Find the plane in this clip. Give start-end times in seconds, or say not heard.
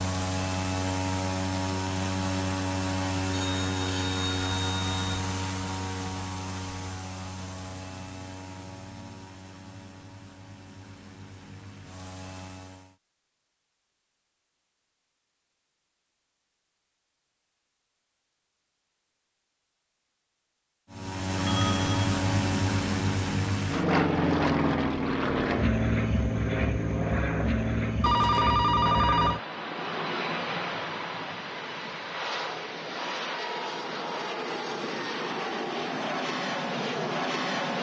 0.0-12.9, 20.9-37.7.